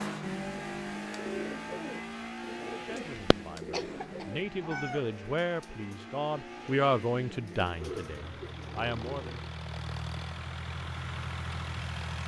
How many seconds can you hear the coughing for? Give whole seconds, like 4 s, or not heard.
2 s.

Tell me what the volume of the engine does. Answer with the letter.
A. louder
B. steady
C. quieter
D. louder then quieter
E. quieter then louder
E.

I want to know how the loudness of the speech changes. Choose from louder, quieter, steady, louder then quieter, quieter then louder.
louder then quieter.